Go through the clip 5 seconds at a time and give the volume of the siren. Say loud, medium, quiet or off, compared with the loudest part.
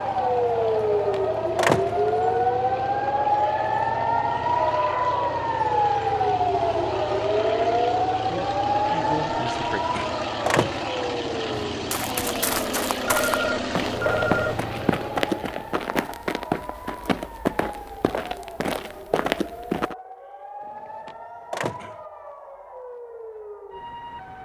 loud, loud, medium, quiet, quiet.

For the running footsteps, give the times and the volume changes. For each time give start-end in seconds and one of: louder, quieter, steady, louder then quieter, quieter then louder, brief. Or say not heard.
11.5-19.9 steady.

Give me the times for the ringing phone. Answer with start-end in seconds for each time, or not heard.
13.1-14.7.